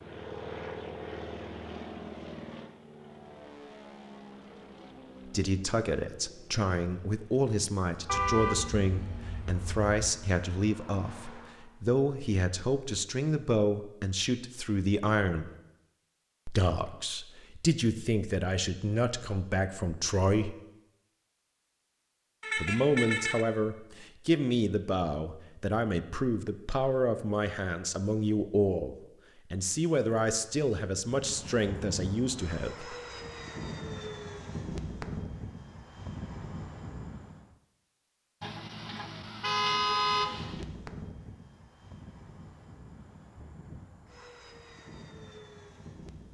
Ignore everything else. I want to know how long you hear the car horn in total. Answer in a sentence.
You can hear the car horn for 5 seconds altogether.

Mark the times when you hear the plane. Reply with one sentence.
The plane can be heard from 0.0 to 11.9 s, from 31.1 to 37.5 s and from 39.8 to 46.2 s.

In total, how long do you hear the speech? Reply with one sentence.
You can hear the speech for 25 seconds altogether.